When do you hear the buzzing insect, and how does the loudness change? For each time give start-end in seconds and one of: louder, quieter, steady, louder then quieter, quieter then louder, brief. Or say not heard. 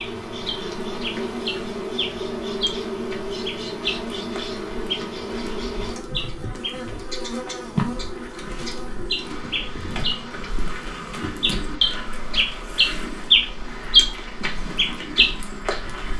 0.0-16.1 quieter.